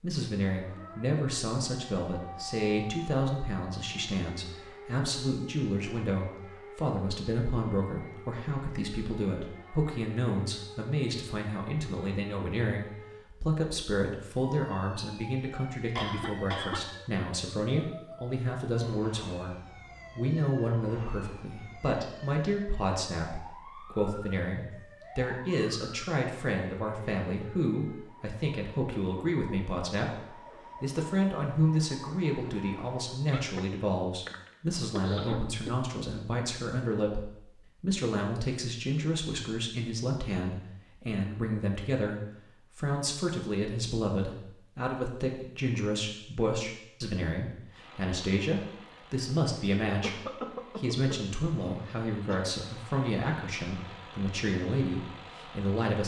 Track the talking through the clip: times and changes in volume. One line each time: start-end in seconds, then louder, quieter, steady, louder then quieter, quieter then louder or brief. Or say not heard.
0.0-56.0 steady.